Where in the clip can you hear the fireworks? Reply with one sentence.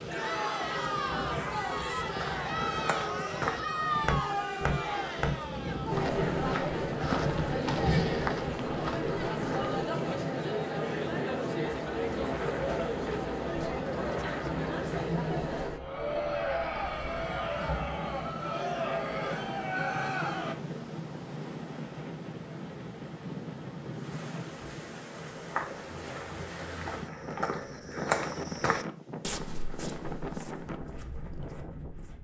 You can't hear the fireworks here.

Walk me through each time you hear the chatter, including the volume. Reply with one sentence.
The chatter can be heard from 0.1 to 20.6 s, at a steady volume.